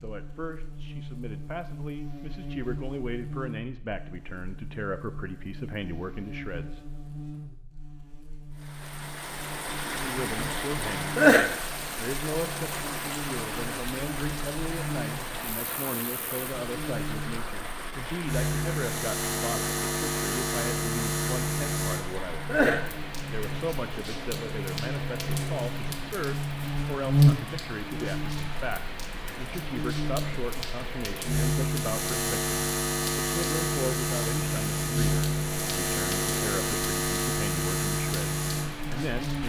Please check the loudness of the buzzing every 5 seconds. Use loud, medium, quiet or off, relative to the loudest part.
quiet, quiet, quiet, medium, medium, loud, loud, loud.